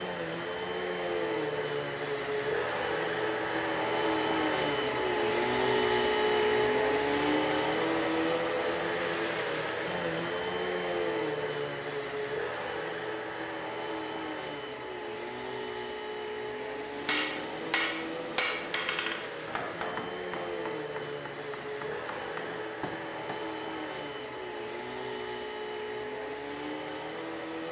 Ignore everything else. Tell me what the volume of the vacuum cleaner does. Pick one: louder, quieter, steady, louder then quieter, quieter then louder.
quieter.